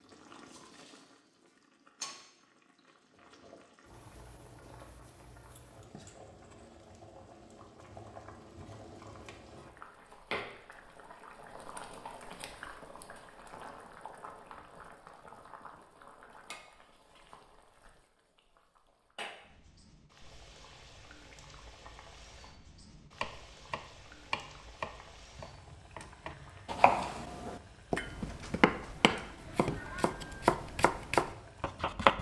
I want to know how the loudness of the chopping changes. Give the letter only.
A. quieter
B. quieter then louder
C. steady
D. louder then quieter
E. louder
E.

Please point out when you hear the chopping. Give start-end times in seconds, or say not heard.
23.2-32.1.